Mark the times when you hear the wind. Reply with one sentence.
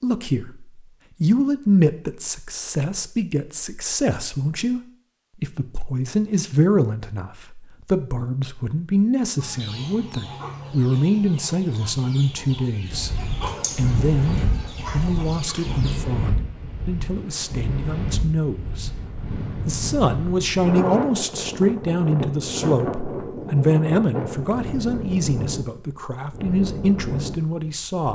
You can hear the wind from 12.8 to 27.8 s.